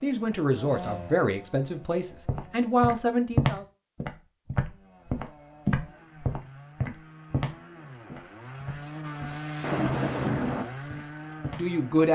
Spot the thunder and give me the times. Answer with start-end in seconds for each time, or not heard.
9.6-10.7.